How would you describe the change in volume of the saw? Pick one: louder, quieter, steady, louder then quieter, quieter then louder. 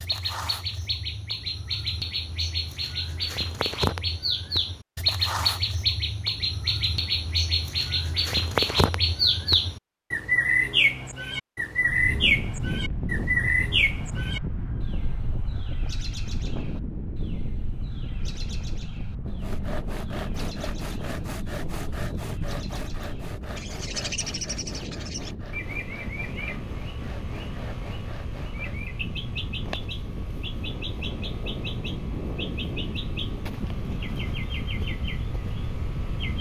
quieter.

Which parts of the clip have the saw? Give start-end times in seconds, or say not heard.
19.2-28.9.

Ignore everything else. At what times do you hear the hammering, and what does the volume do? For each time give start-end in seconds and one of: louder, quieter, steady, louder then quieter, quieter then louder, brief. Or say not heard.
not heard.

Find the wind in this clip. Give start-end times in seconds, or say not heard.
11.8-36.3.